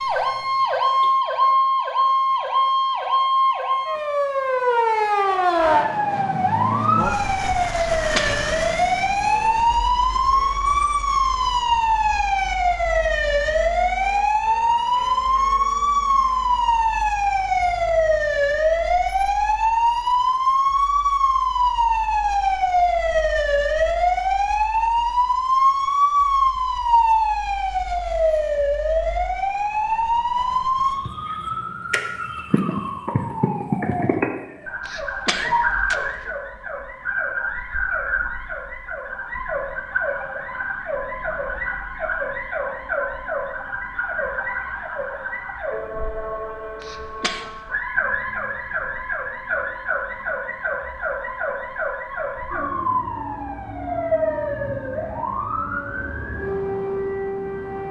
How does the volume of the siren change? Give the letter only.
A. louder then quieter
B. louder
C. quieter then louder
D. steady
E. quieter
E.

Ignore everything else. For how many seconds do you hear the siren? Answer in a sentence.
You can hear the siren for 58 seconds altogether.